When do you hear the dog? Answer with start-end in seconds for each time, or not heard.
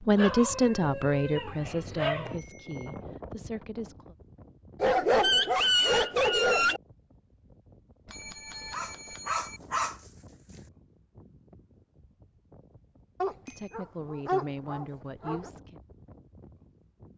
0.1-2.4, 4.8-6.8, 8.7-10.6, 13.2-15.5.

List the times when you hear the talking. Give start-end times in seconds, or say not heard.
0.0-4.2, 13.4-15.8.